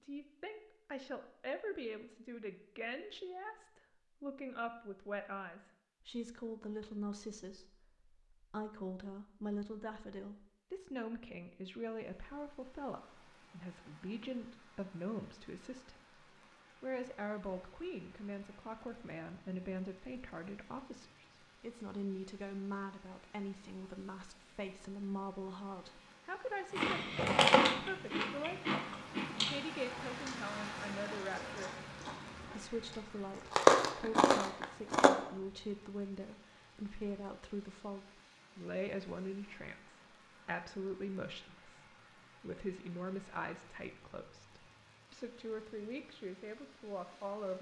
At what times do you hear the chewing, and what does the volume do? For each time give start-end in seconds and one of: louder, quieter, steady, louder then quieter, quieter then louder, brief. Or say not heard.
26.8-35.1 quieter then louder.